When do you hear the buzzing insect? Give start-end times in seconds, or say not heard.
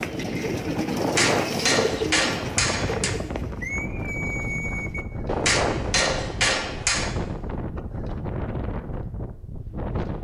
not heard.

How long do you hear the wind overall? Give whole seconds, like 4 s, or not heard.
10 s.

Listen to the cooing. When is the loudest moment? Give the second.
2 s.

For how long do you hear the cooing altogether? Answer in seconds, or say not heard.
5 s.